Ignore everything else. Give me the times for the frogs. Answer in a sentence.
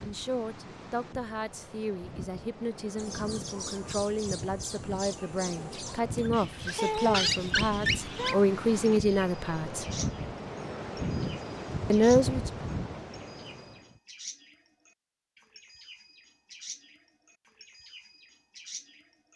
You can't hear the frogs here.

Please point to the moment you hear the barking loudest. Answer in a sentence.
The volume of the barking peaks at 7 seconds.